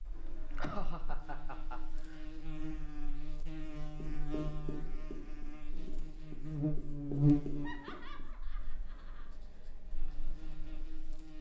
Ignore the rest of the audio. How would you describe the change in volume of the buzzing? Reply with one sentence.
The volume of the buzzing goes up, then down.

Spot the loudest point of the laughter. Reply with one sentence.
The loudest moment of the laughter is at 1 second.